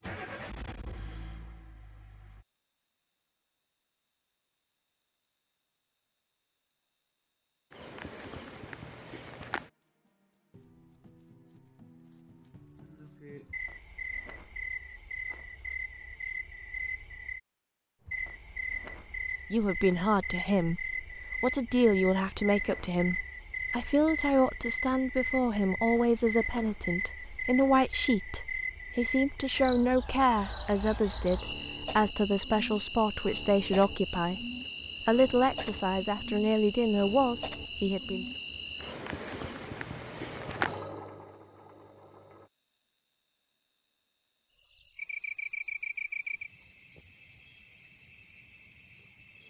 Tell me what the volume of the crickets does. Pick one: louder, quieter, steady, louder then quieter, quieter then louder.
louder.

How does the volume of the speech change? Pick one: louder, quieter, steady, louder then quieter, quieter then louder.
steady.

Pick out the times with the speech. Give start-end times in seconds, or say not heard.
19.5-34.5, 35.0-38.2.